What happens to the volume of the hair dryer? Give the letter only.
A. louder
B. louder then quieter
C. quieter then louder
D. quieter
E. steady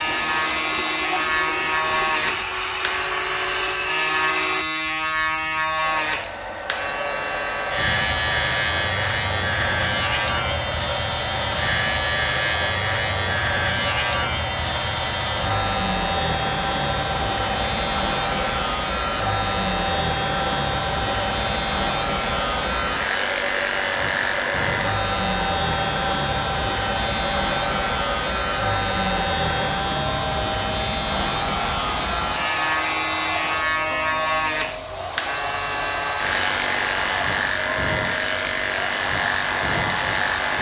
E.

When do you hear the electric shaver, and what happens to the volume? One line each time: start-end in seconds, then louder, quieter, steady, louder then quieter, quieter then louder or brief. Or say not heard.
0.0-40.5 steady.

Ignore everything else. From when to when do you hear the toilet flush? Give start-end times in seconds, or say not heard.
0.1-2.5.